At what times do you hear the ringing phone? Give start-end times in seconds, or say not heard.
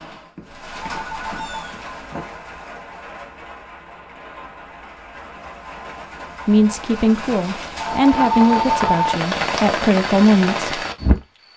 0.3-2.2, 7.8-9.1.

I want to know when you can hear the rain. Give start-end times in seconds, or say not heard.
0.0-11.5.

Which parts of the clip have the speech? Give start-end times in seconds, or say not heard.
6.5-10.8.